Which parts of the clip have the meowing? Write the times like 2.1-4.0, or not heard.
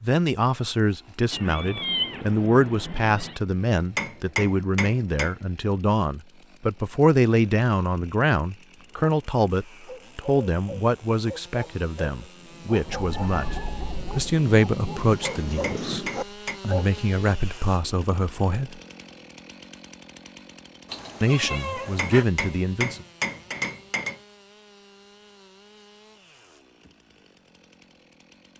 1.3-3.4, 12.8-14.3, 20.9-22.2.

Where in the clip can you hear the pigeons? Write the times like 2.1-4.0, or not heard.
not heard.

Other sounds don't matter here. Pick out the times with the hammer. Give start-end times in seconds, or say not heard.
3.8-5.3, 15.2-16.6, 21.8-24.2.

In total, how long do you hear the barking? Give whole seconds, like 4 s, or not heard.
8 s.